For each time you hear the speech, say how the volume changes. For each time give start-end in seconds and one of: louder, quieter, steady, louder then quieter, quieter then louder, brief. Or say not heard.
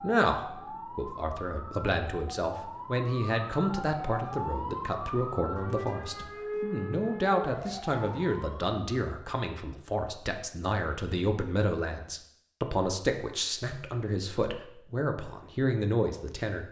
0.0-16.6 steady.